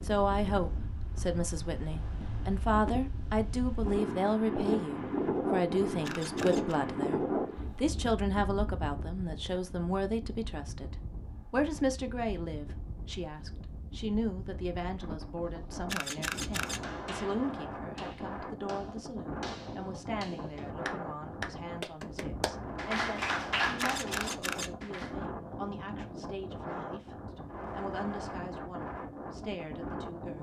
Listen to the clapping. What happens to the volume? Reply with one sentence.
The loudness of the clapping goes up.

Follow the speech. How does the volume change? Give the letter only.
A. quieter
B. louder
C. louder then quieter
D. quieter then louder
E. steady
A.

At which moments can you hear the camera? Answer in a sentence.
The camera can be heard from 6.0 to 6.8 s, from 15.9 to 16.8 s and from 23.8 to 24.7 s.